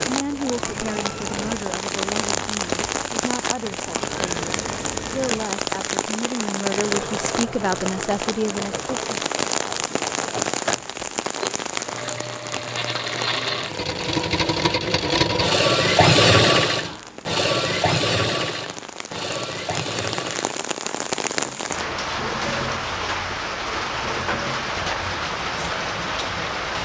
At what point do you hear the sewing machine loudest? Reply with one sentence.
The loudest moment of the sewing machine is at 16 seconds.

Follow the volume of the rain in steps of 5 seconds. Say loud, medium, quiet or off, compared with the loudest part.
loud, loud, loud, medium, loud, loud.